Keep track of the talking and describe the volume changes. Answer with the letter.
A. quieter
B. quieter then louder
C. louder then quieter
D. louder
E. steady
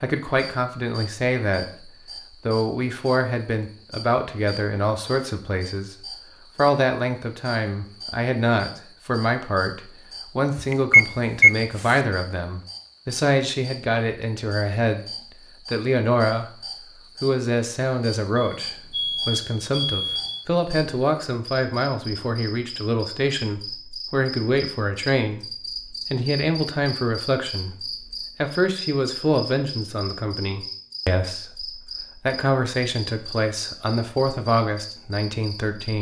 E.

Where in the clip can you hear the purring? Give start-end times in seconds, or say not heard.
not heard.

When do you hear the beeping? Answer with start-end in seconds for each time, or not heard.
10.6-11.9, 18.4-20.4.